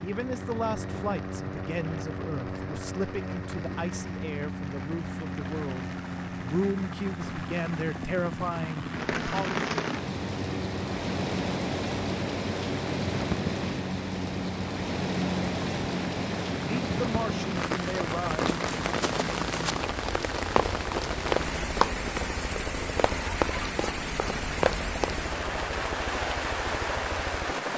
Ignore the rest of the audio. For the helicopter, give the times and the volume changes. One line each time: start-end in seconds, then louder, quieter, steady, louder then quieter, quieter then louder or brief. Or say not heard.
0.0-27.7 steady.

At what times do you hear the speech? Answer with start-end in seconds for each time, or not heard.
0.0-9.7, 16.6-18.4.